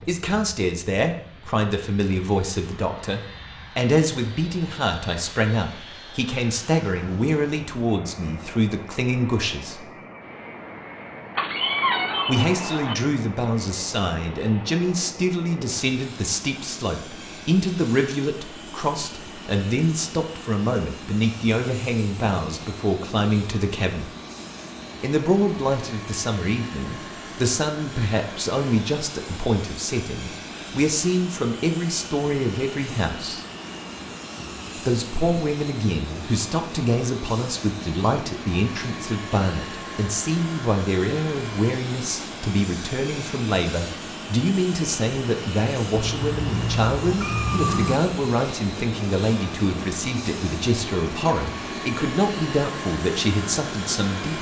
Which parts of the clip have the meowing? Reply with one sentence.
You can hear the meowing from 11.3 to 12.9 s and from 45.9 to 48.0 s.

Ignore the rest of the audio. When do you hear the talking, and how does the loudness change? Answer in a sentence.
The talking can be heard from 0.1 to 9.9 s, at a steady volume; from 12.2 to 24.1 s, at a steady volume; from 25.0 to 33.5 s, at a steady volume; and from 34.8 to 54.3 s, at a steady volume.